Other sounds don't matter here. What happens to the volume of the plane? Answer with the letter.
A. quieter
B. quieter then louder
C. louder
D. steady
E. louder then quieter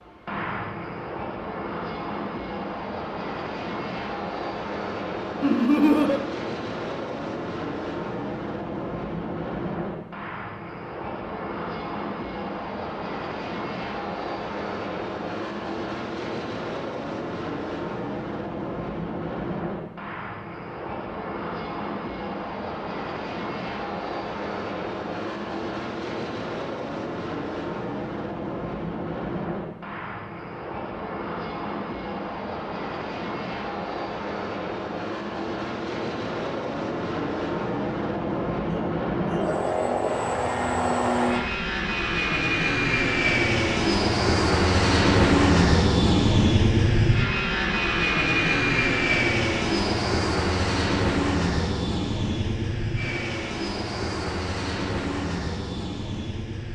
C.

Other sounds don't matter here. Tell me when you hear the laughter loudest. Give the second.
6 s.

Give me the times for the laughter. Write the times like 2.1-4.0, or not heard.
5.4-6.2, 38.6-39.5.